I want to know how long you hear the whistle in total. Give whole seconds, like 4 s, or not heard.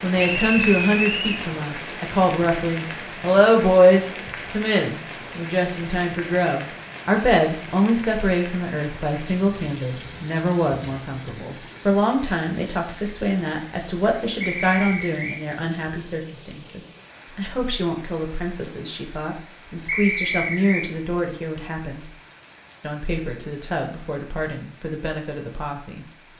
3 s.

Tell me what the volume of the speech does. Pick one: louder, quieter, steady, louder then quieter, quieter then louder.
quieter.